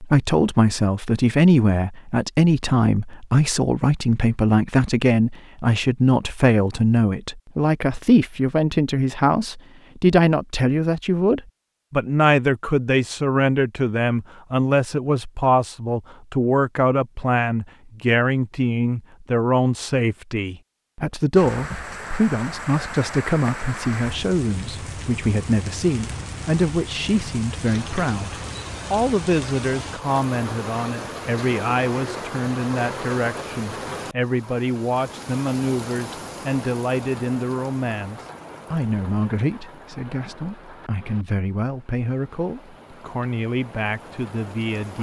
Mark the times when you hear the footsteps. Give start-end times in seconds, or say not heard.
not heard.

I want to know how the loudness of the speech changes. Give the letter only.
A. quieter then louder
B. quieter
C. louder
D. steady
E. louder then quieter
B.